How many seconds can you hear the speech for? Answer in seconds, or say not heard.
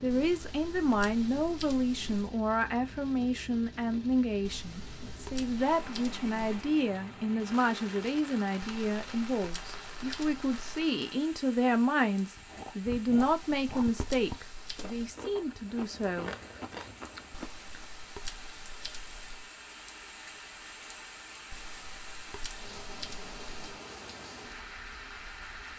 16 s.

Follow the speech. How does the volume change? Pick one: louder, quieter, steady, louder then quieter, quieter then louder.
steady.